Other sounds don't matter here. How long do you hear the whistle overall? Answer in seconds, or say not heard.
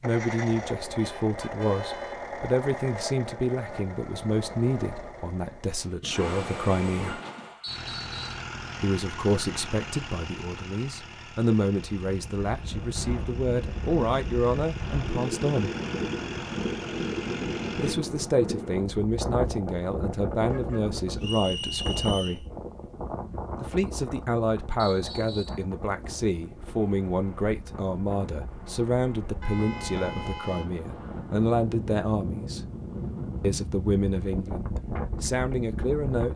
3 s.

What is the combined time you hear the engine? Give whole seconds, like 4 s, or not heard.
18 s.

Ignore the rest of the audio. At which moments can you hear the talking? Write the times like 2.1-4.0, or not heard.
0.0-7.2, 8.8-15.7, 17.8-22.4, 23.6-32.6, 33.4-36.3.